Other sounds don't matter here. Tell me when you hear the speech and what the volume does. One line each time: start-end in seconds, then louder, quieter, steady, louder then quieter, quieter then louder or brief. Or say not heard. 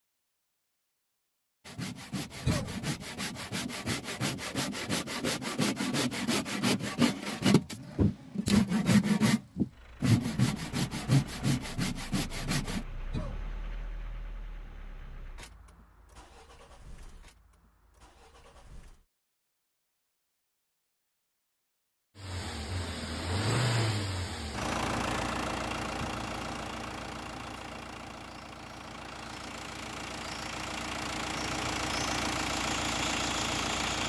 not heard.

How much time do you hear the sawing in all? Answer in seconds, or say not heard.
11 s.